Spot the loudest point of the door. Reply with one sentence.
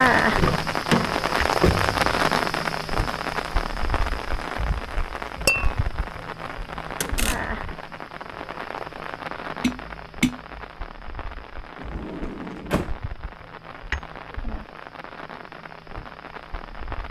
The loudest moment of the door is at 1 second.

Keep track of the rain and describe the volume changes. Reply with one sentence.
The volume of the rain goes down.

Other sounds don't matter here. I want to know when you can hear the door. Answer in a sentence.
You can hear the door from 0.3 to 2.0 s, from 7.0 to 7.6 s and from 11.8 to 12.9 s.